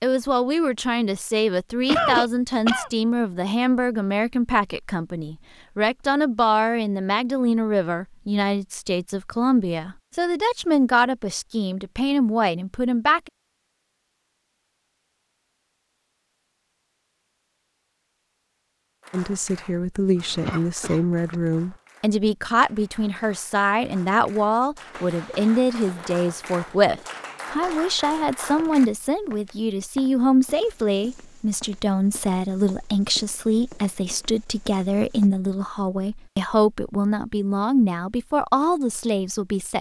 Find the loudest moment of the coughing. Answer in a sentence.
The loudest moment of the coughing is at 2 seconds.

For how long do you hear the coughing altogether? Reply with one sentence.
You can hear the coughing for 2 seconds altogether.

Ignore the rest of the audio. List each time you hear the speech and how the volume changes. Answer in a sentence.
The speech can be heard from 0.0 to 13.3 s, at a steady volume; and from 19.1 to 39.7 s, at a steady volume.